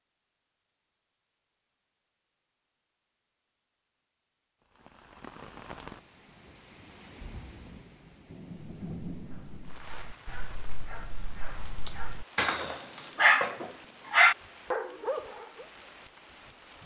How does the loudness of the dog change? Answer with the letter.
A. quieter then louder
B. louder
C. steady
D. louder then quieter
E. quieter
B.